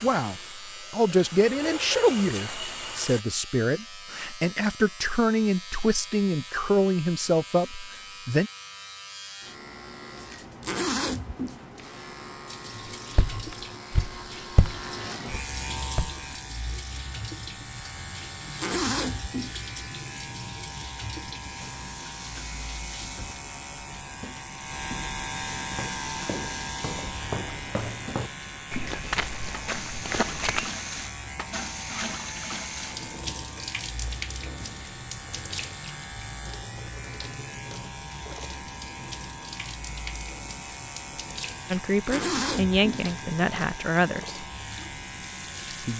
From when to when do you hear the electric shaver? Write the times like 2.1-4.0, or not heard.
0.0-45.9.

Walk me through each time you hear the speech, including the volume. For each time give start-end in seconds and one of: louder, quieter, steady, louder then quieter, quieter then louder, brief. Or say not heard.
0.0-8.5 steady
41.7-44.5 brief.